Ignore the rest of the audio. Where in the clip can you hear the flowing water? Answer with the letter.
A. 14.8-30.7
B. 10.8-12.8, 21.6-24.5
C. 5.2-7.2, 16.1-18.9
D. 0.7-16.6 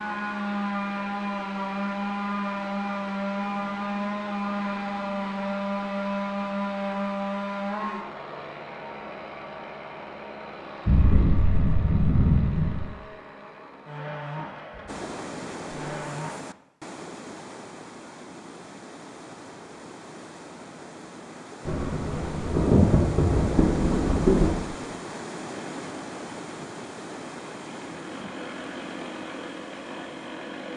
A.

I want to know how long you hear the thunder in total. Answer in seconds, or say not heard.
5 s.